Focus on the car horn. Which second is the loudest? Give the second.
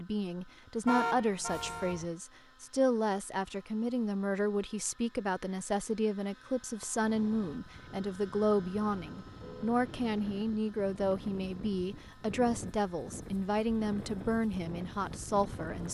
1 s.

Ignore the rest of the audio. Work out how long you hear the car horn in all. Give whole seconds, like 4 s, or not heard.
2 s.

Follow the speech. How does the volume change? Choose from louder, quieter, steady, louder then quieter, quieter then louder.
steady.